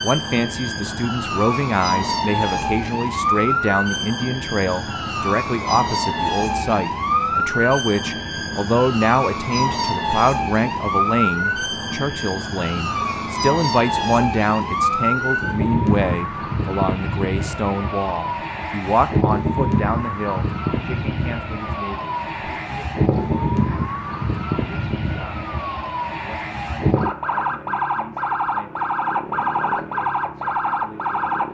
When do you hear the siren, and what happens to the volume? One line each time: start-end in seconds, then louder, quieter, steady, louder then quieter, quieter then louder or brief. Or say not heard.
0.0-31.4 steady.